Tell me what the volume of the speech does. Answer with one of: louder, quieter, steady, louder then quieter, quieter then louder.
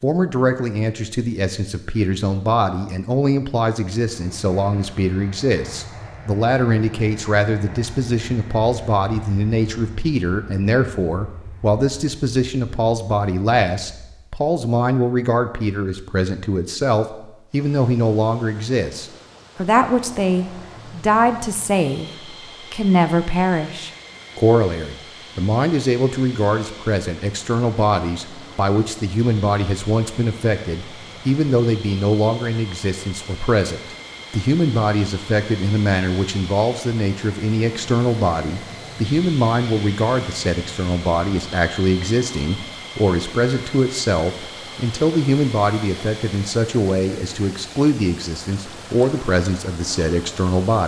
steady.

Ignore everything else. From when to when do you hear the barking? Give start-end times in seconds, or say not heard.
not heard.